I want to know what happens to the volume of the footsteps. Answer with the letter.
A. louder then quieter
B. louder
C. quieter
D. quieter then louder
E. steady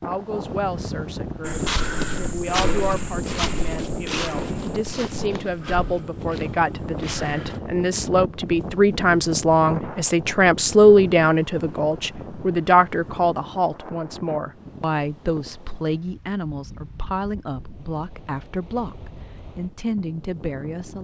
C.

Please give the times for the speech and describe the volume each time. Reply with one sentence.
The speech can be heard from 0.0 to 21.0 s, getting louder then quieter.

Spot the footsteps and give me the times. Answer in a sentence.
The footsteps can be heard from 1.4 to 7.6 s.